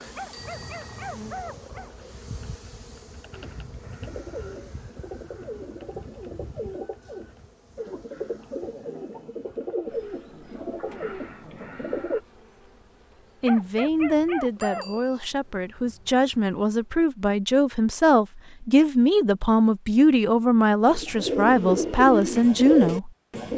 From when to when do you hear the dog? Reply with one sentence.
You can hear the dog from 0.1 to 2.1 s and from 13.4 to 15.1 s.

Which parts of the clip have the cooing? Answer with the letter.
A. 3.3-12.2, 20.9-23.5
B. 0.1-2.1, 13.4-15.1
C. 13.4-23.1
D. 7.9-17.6
A.